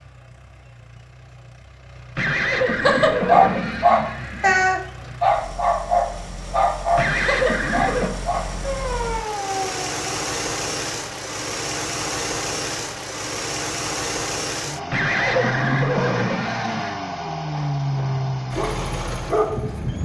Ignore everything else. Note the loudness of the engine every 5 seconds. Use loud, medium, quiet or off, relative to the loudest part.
quiet, medium, loud, loud.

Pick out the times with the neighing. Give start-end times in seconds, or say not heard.
2.1-4.7, 7.0-8.1, 14.9-16.9.